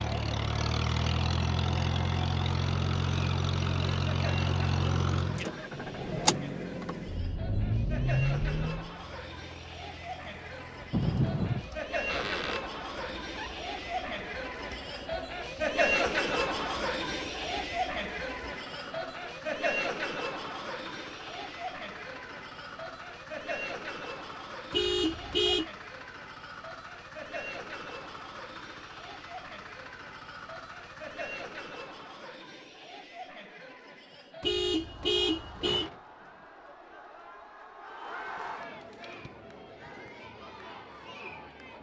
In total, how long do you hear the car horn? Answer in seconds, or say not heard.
3 s.